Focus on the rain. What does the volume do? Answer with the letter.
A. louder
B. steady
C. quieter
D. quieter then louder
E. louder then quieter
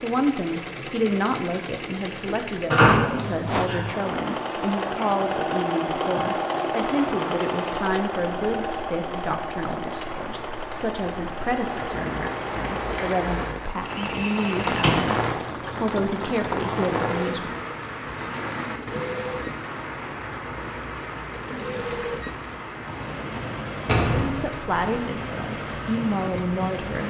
E.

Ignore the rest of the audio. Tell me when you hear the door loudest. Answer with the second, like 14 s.
3 s.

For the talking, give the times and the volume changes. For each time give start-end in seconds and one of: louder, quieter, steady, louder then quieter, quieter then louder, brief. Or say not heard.
0.0-14.9 steady
15.8-17.6 brief
24.1-27.0 brief.